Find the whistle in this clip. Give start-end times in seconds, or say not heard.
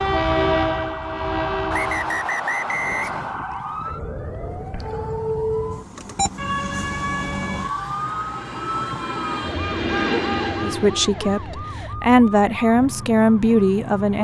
1.7-3.4.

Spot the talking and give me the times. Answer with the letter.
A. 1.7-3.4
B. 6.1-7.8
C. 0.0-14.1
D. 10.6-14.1
D.